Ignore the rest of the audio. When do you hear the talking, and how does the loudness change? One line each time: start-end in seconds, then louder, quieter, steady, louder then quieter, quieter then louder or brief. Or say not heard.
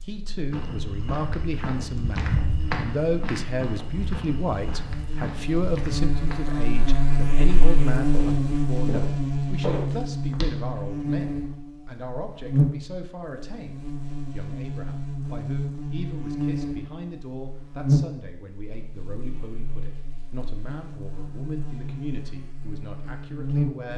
0.0-23.9 quieter.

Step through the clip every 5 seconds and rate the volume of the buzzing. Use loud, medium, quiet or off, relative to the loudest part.
quiet, loud, loud, loud, medium.